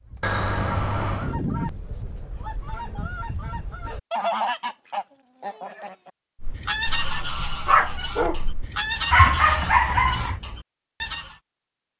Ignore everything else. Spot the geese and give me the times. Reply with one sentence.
You can hear the geese from 0.1 to 11.3 s.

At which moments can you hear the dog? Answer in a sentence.
You can hear the dog from 6.4 to 10.3 s.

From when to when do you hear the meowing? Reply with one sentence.
The meowing can be heard from 0.2 to 1.4 s.